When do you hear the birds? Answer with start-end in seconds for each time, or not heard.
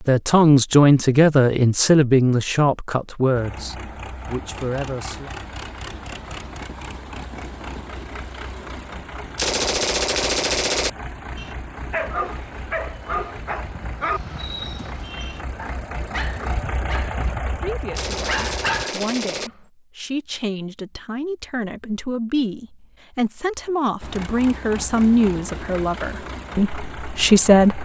not heard.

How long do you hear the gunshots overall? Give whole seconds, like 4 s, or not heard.
3 s.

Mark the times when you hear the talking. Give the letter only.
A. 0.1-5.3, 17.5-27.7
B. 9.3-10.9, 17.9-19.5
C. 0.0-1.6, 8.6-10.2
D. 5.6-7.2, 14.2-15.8
A.